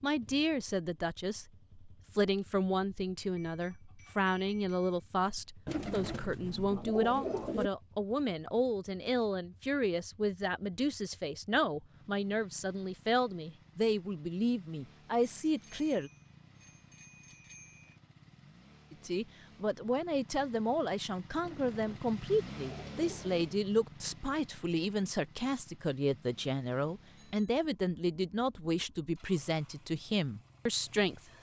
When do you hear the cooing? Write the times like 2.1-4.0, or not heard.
5.7-7.7, 21.4-23.4.